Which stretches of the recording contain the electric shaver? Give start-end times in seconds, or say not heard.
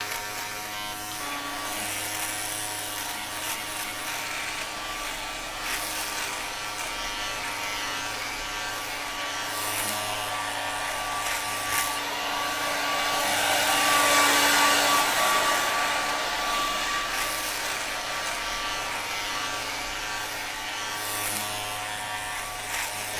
0.0-23.1.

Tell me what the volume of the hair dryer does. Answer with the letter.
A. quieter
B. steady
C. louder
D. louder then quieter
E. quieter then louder
D.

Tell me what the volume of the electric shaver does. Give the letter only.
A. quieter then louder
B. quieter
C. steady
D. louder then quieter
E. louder
C.